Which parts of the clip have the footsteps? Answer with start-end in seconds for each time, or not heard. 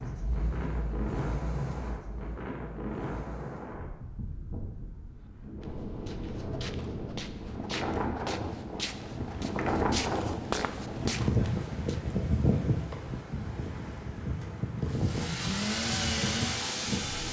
5.1-12.1.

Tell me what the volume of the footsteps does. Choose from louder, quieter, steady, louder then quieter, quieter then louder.
louder.